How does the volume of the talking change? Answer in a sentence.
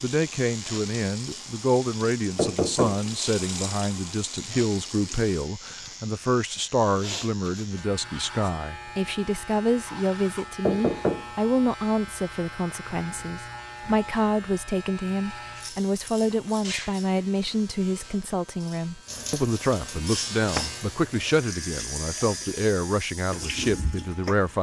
The volume of the talking stays about the same.